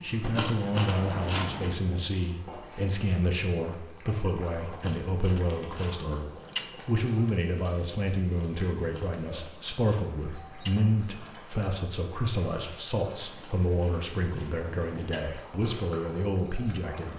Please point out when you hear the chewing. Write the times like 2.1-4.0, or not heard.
0.2-1.9, 4.7-6.8, 8.8-10.8, 13.2-15.4.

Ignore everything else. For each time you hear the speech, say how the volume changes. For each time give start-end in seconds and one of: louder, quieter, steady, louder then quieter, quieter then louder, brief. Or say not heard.
0.0-17.1 steady.